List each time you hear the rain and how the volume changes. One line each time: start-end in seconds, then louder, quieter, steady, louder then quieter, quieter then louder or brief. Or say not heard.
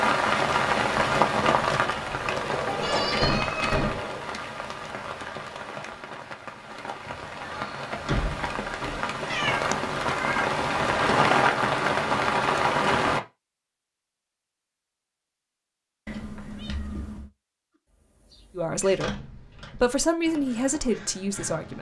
0.0-13.2 quieter then louder.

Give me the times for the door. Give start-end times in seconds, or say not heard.
2.2-4.2, 7.5-9.0, 19.0-19.9.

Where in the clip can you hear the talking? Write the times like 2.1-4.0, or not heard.
18.6-21.7.